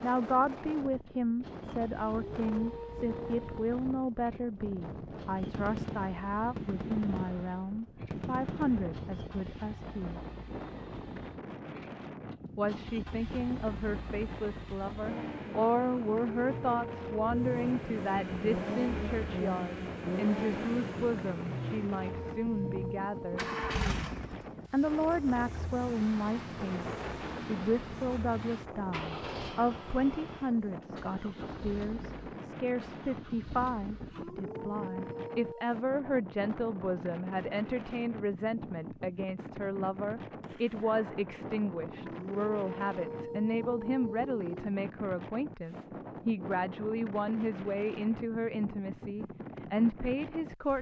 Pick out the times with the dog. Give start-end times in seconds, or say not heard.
2.0-3.8, 16.1-17.5, 21.6-23.8, 34.1-35.8, 42.0-44.5.